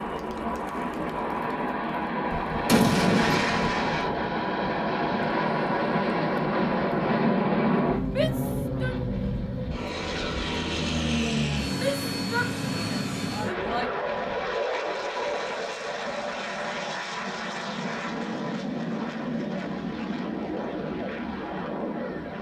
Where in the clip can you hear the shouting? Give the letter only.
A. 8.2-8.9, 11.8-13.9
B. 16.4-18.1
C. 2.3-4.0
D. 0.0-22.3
A.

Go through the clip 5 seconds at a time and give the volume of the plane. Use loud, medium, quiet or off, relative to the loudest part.
loud, loud, loud, medium, medium.